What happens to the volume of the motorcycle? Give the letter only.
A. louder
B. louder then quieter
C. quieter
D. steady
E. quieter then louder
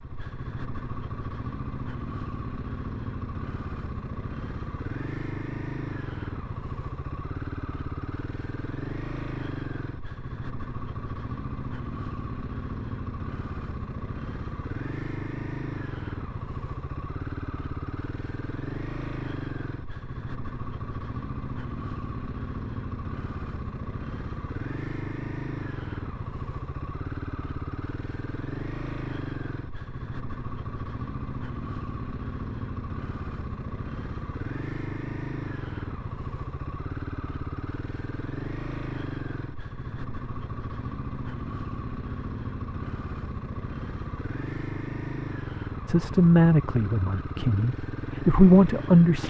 D.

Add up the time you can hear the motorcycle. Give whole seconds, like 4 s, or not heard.
49 s.